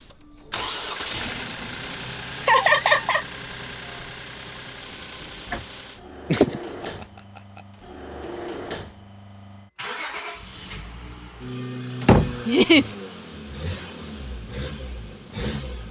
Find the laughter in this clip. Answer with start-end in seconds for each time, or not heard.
2.4-3.2, 6.3-7.0, 12.4-12.8.